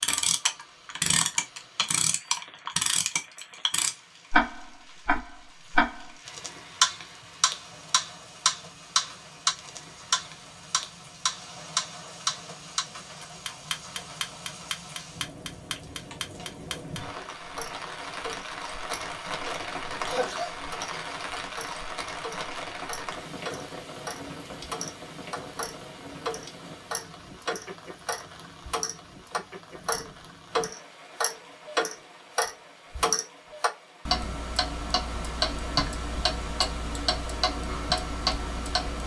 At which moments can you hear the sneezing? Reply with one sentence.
The sneezing can be heard from 20.1 to 21.1 s.